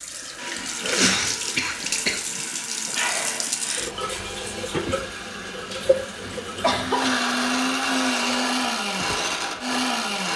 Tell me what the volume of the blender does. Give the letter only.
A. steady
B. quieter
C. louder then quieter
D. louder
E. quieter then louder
D.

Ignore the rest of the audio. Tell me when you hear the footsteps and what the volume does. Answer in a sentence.
The footsteps can't be heard in this clip.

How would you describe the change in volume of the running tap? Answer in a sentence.
The loudness of the running tap goes down.